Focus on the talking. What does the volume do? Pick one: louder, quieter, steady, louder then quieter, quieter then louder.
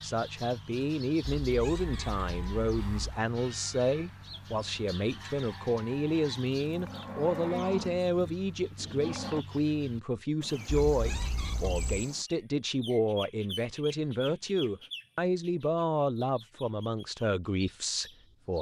steady.